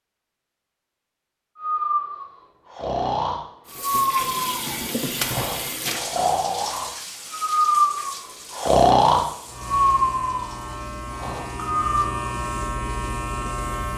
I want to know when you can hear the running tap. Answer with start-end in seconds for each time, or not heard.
3.6-13.9.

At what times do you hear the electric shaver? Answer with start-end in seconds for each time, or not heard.
9.4-13.9.